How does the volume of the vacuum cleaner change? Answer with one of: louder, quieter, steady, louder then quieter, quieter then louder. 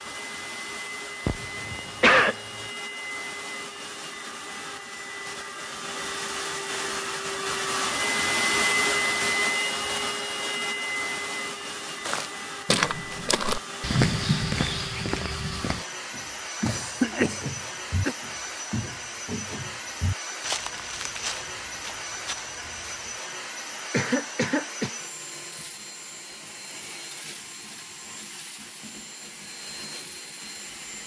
louder then quieter.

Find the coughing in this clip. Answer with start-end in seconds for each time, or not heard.
1.2-2.4, 16.6-18.1, 23.9-24.9.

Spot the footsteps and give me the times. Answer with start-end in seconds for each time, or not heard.
12.1-23.1.